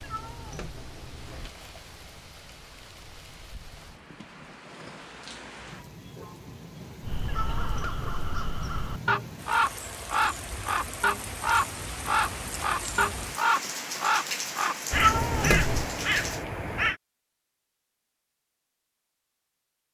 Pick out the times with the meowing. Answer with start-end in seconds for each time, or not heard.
0.0-1.5, 7.2-8.0, 14.9-15.8.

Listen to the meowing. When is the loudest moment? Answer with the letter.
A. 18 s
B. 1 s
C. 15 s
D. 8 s
C.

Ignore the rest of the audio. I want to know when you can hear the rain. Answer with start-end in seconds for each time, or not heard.
0.0-16.4.